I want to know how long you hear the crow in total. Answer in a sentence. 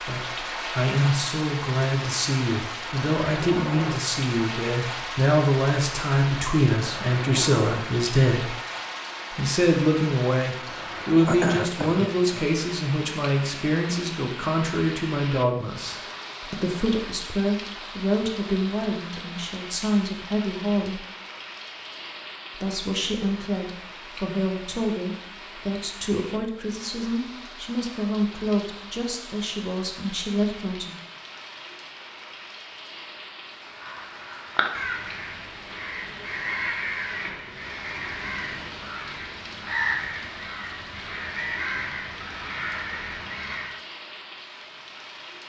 You can hear the crow for 10 seconds altogether.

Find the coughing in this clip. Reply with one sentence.
You can hear the coughing from 11.2 to 12.4 s.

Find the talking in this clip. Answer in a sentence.
You can hear the talking from 0.0 to 8.5 s, from 9.3 to 21.0 s and from 22.5 to 30.9 s.